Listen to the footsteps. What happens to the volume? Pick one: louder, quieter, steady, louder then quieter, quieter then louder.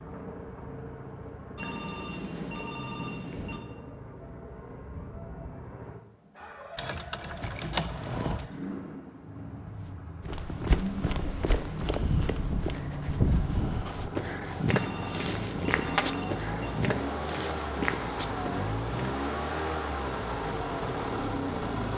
steady.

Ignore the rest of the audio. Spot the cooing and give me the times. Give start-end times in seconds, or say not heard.
not heard.